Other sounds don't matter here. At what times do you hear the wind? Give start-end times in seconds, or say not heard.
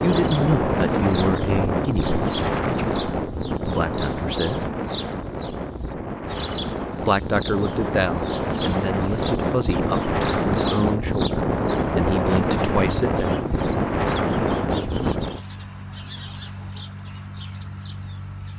0.0-15.4.